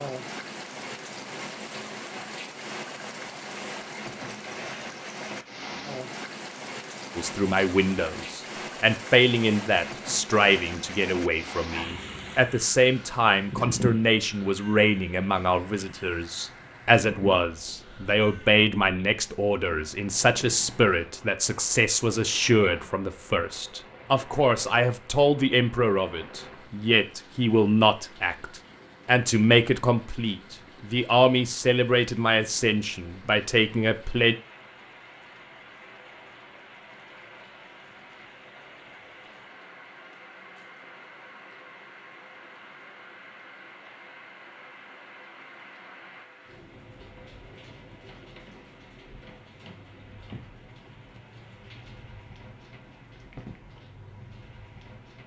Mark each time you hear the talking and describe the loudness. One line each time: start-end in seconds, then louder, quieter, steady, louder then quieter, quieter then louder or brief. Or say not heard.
7.2-34.4 steady.